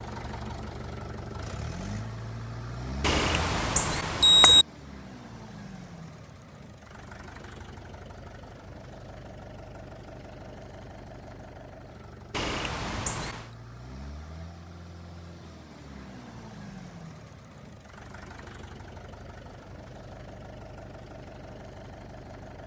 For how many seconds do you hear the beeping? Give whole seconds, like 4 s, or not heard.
3 s.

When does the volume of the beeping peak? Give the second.
4 s.